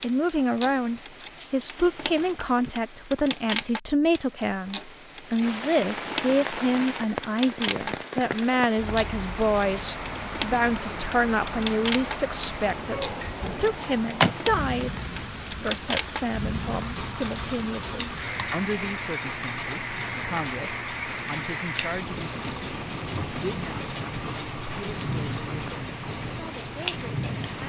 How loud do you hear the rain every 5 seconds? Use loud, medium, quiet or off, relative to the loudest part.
off, loud, loud, loud, loud, loud.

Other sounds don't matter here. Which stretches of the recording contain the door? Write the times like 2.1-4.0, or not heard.
13.8-14.3.